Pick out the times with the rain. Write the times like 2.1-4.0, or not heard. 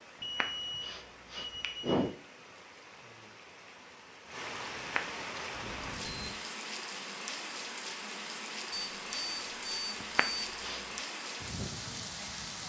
0.0-12.6.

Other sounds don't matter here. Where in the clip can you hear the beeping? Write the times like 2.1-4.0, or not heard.
0.2-1.9, 5.5-6.3, 8.7-10.6.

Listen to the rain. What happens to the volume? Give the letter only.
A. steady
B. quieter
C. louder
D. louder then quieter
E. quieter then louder
C.